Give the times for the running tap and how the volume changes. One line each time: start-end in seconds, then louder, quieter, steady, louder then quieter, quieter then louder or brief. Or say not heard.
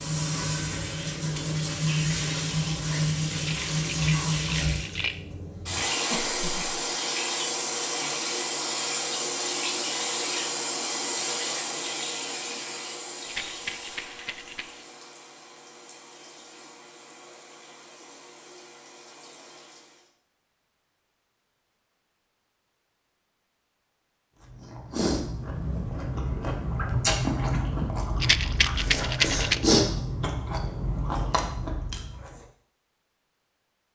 0.0-20.1 quieter.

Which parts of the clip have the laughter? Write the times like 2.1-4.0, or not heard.
6.1-6.8.